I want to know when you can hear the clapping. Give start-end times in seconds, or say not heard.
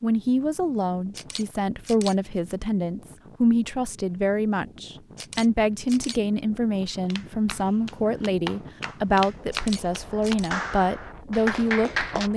7.0-12.3.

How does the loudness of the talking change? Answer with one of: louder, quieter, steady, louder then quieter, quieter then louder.
steady.